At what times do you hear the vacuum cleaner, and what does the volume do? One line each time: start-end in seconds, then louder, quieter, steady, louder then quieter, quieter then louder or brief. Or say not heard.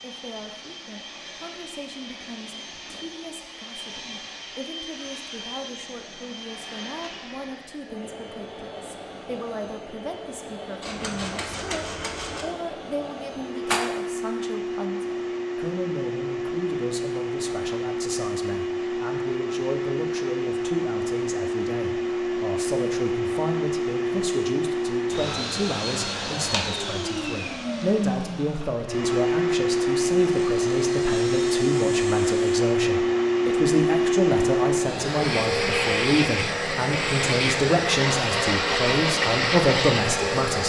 0.0-40.6 louder.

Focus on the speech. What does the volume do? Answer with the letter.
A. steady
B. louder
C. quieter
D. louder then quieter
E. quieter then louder
B.